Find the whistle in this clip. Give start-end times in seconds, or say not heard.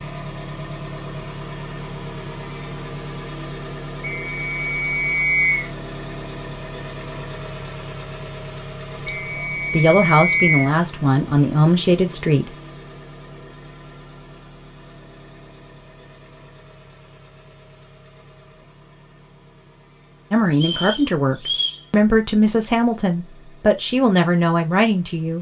4.0-5.7, 9.1-10.8, 20.6-21.8.